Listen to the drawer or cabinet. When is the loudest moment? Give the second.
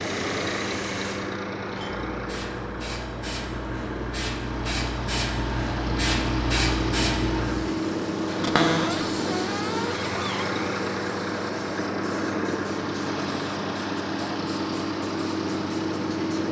9 s.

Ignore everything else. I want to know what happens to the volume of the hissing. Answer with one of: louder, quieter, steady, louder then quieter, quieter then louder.
louder then quieter.